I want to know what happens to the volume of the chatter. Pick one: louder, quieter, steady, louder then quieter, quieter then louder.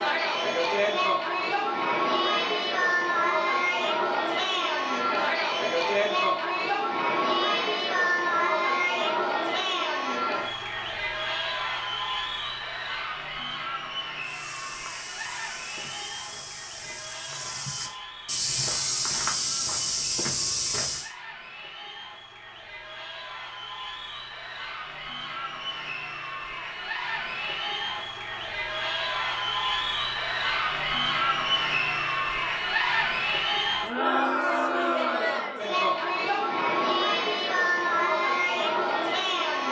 quieter then louder.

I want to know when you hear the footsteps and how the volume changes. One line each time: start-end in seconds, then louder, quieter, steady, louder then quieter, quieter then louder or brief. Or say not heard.
14.2-21.1 louder.